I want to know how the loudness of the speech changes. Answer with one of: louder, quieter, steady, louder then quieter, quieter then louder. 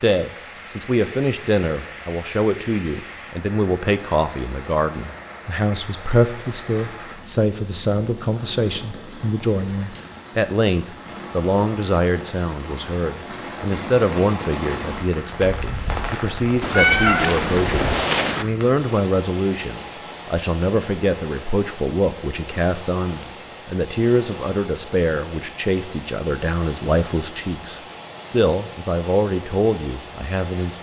steady.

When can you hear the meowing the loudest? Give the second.
17 s.